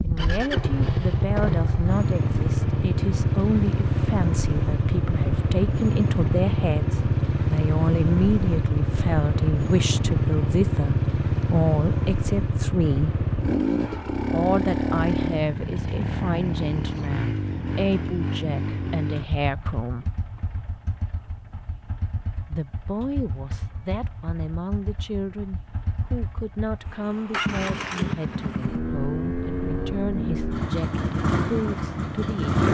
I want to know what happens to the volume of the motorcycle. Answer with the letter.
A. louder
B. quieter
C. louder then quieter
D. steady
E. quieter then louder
E.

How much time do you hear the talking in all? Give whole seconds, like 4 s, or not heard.
29 s.